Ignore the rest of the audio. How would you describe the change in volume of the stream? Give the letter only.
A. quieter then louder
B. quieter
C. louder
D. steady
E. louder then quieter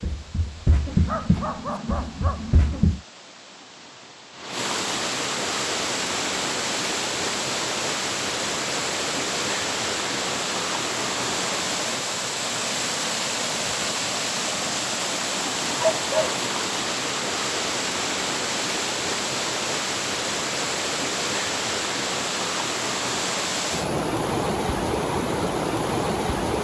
C.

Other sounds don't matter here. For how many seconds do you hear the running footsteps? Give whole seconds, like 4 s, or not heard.
3 s.